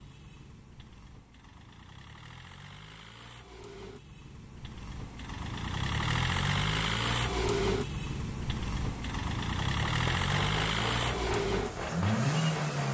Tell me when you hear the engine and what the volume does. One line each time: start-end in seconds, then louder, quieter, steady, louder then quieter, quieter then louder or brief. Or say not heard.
0.0-12.8 louder.